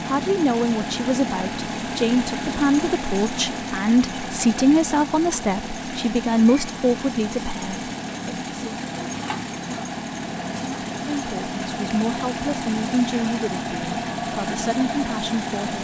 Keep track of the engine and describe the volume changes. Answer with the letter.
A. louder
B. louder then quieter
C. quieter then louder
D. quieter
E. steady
E.